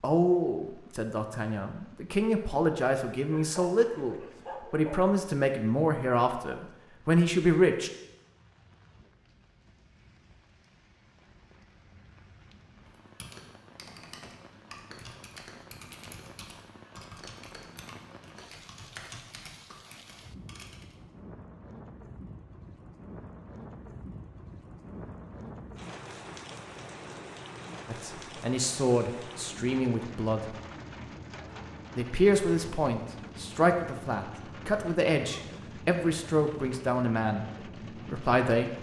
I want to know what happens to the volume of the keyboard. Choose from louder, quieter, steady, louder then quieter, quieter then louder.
steady.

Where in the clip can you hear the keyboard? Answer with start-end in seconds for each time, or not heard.
12.8-20.9.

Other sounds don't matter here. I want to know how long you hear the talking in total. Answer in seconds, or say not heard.
17 s.